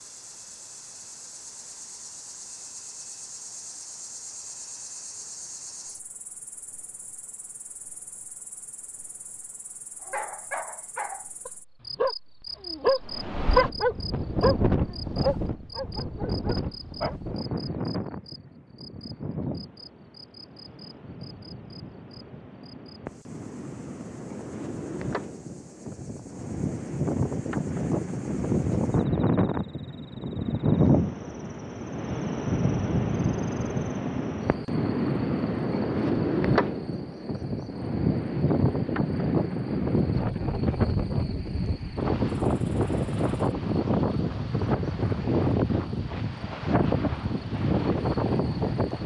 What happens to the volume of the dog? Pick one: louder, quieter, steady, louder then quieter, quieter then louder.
louder then quieter.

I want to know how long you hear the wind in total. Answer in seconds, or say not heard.
36 s.